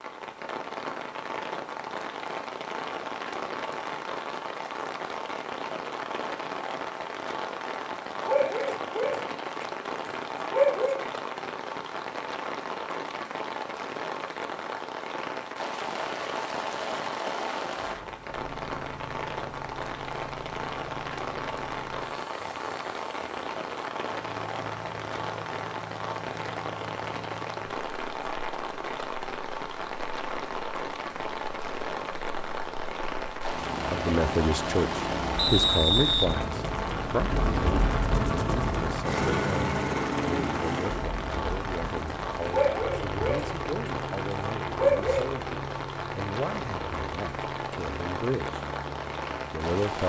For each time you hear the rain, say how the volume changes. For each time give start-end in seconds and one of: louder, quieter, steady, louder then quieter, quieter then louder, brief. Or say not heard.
0.0-50.0 steady.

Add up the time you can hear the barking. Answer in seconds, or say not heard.
6 s.